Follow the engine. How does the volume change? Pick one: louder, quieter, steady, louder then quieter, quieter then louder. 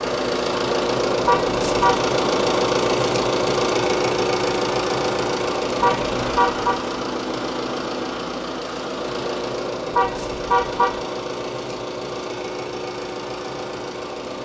quieter.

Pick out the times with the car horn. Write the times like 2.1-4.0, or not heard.
1.2-2.0, 5.8-6.8, 9.9-11.0.